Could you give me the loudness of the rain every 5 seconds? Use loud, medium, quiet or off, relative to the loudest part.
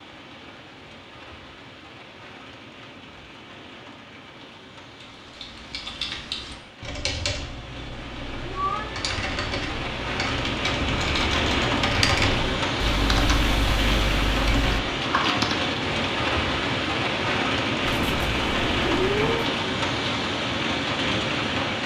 quiet, quiet, loud, loud, loud.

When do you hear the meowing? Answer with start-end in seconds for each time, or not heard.
8.4-9.0, 17.9-19.5.